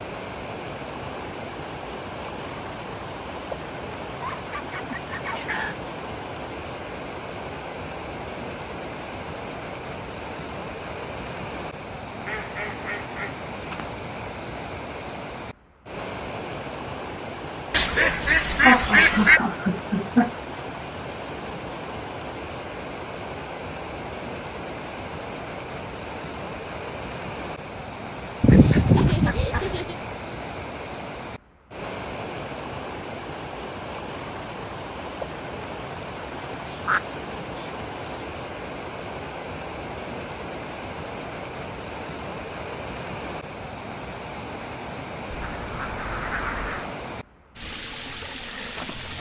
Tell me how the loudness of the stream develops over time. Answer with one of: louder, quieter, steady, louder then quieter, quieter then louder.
steady.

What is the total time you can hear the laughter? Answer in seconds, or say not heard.
4 s.